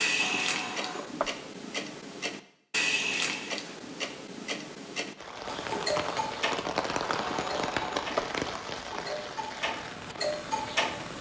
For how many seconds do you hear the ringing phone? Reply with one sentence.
The ringing phone can be heard for 2 seconds in total.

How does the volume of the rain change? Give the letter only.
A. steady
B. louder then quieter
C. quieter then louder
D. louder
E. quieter
E.